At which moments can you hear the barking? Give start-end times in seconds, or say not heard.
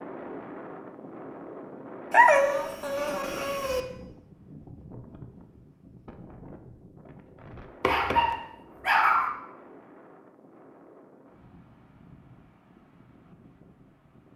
2.1-3.8, 7.8-9.3.